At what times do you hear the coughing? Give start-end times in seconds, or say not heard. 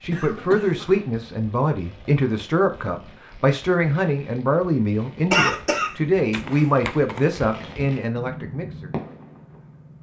0.1-1.0, 5.3-7.2.